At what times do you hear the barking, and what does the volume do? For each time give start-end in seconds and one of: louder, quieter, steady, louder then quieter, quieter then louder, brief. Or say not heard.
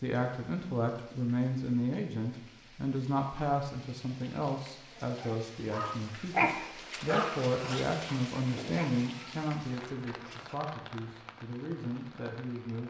5.2-10.6 quieter.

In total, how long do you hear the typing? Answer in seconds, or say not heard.
not heard.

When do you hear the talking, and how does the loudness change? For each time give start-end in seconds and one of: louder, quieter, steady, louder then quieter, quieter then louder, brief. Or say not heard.
0.0-12.8 quieter.